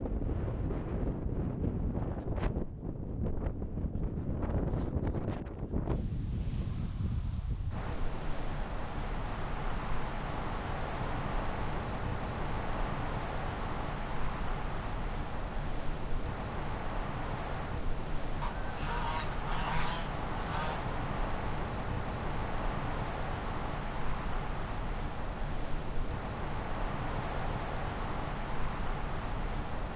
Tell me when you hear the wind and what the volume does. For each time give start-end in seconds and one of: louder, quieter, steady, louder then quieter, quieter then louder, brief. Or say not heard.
0.0-29.9 steady.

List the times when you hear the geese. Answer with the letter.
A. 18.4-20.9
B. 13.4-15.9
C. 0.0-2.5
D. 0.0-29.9
A.